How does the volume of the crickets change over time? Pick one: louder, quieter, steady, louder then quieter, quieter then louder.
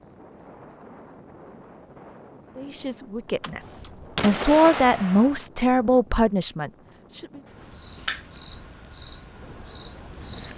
quieter then louder.